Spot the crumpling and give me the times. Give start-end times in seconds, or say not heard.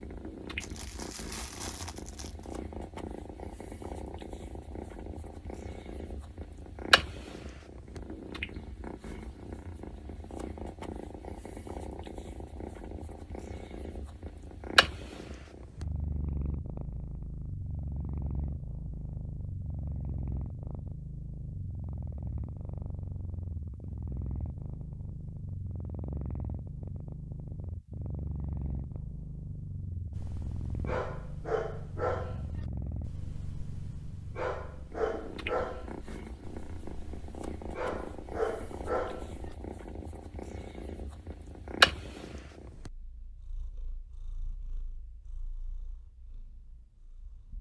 0.6-2.6.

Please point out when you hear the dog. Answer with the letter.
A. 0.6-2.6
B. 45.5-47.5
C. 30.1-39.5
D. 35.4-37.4
C.